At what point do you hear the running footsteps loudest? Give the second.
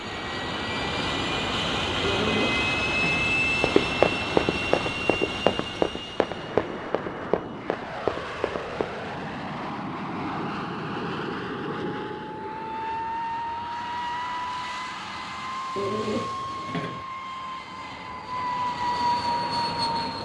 4 s.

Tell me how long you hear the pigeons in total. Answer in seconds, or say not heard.
3 s.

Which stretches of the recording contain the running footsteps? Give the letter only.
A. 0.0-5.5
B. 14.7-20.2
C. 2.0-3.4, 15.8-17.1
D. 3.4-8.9
D.